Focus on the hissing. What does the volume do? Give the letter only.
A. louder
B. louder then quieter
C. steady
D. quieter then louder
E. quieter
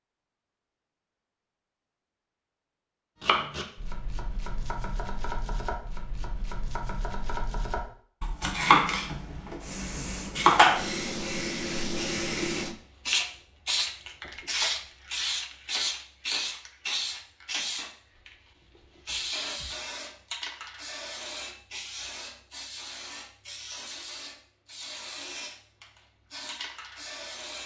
E.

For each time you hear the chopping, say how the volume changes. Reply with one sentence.
You can hear the chopping from 3.2 to 10.8 s, getting louder then quieter.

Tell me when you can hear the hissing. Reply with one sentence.
The hissing can be heard from 9.6 to 27.6 s.